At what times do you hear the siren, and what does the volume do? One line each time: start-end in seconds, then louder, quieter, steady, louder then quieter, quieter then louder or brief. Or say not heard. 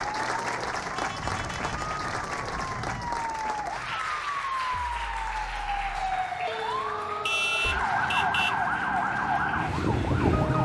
0.0-10.5 louder.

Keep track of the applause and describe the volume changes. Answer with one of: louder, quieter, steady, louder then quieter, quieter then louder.
quieter.